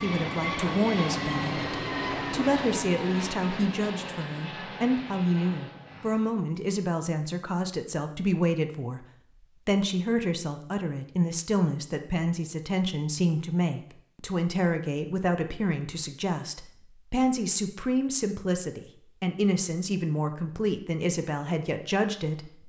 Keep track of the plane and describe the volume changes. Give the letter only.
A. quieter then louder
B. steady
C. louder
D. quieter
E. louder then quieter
D.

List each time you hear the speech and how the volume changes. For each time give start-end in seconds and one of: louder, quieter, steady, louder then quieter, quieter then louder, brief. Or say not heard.
0.0-22.6 steady.